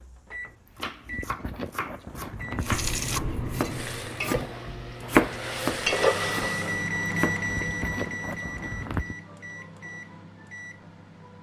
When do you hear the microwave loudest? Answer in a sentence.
The loudest moment of the microwave is at 7 seconds.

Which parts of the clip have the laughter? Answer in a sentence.
You can't hear the laughter here.